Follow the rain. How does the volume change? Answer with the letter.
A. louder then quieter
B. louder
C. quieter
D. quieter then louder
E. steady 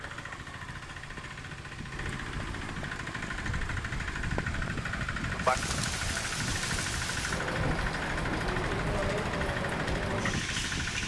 B.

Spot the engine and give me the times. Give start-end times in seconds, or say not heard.
0.0-11.0.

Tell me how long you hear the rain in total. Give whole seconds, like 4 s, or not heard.
11 s.